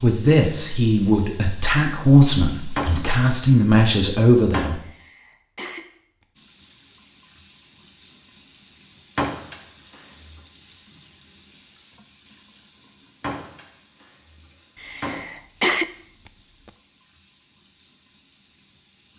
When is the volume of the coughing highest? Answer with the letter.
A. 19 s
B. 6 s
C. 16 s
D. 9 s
C.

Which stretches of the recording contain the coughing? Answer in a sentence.
You can hear the coughing from 4.8 to 6.2 s and from 14.8 to 16.7 s.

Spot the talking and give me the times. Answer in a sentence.
You can hear the talking from 0.0 to 4.8 s.